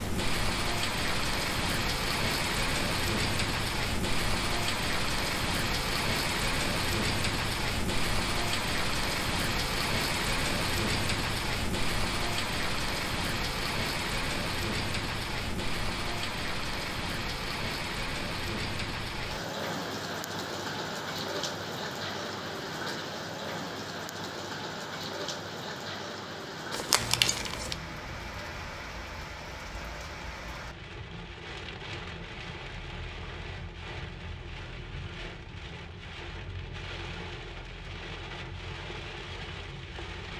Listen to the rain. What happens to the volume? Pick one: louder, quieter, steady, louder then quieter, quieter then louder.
quieter.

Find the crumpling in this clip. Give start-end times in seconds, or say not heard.
26.7-27.8.